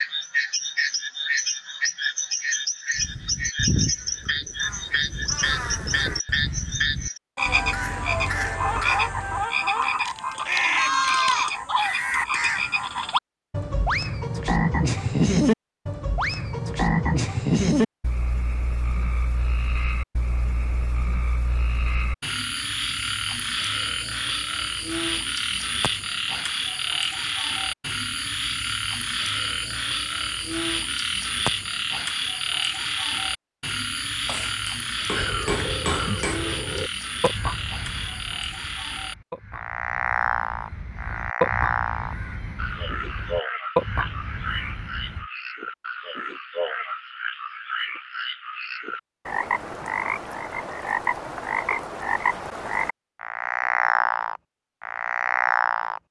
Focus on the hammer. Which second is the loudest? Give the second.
36 s.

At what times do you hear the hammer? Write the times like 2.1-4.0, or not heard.
34.2-36.5.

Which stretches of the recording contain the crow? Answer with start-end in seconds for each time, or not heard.
3.0-13.1, 35.1-45.3.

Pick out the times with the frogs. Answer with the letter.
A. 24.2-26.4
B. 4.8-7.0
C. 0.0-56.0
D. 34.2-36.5
C.